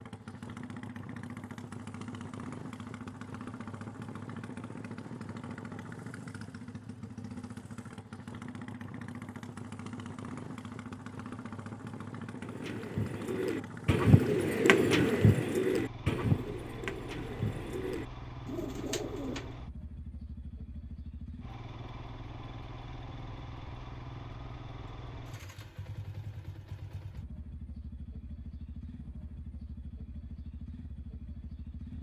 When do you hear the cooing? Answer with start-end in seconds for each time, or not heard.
12.4-19.6.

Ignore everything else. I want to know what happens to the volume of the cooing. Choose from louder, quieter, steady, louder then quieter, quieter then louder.
louder then quieter.